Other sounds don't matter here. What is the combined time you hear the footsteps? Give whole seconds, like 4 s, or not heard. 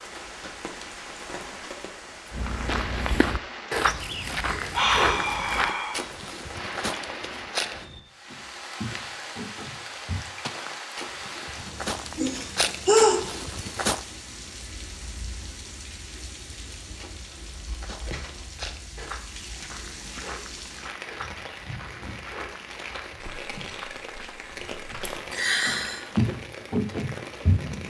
23 s.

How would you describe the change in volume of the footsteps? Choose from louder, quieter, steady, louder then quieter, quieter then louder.
quieter then louder.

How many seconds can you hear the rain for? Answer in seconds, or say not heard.
28 s.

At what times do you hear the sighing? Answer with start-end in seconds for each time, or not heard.
4.7-6.0, 12.2-13.2, 25.3-26.1.